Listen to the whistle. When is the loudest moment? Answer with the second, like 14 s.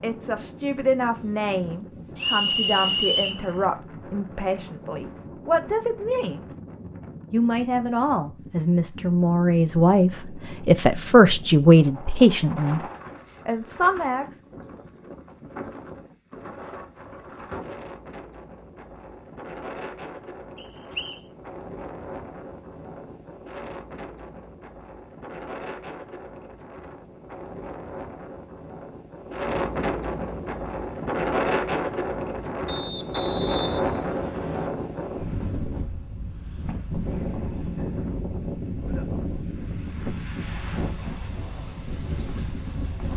3 s.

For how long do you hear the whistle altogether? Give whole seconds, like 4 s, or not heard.
4 s.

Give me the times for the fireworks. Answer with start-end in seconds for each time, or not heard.
not heard.